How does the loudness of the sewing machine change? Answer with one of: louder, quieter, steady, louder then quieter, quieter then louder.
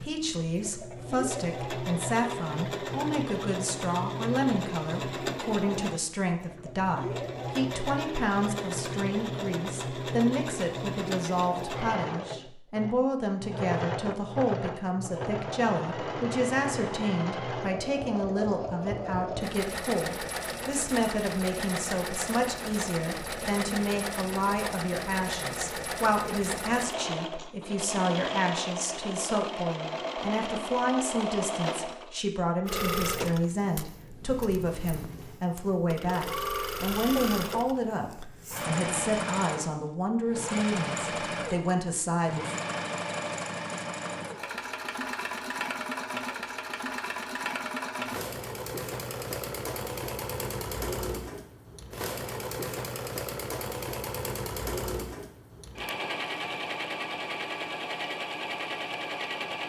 steady.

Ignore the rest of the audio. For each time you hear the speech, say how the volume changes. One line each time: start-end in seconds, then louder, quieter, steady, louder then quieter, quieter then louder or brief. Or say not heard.
0.0-42.5 steady.